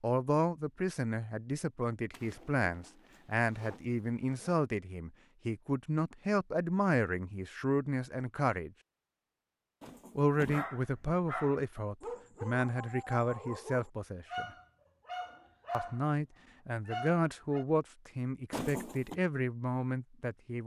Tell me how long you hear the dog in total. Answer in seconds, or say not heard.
6 s.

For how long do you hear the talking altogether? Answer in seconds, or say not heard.
18 s.